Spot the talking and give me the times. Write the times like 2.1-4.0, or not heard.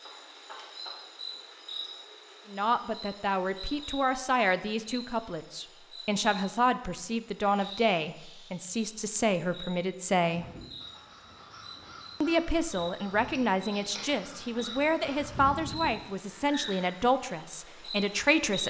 2.5-10.4, 12.2-18.6.